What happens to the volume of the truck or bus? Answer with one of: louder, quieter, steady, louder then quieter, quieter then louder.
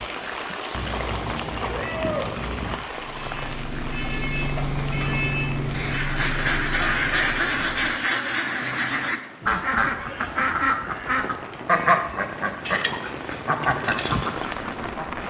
louder then quieter.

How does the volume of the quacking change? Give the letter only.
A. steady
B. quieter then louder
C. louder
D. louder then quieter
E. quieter
A.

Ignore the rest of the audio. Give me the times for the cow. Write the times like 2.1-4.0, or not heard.
not heard.